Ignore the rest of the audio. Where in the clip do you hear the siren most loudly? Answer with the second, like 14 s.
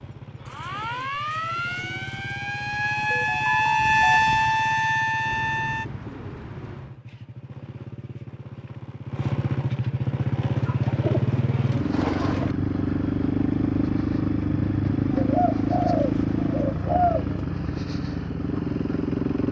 4 s.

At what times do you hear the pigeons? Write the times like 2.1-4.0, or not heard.
0.5-2.5, 5.2-7.0, 10.6-12.6, 15.1-17.4.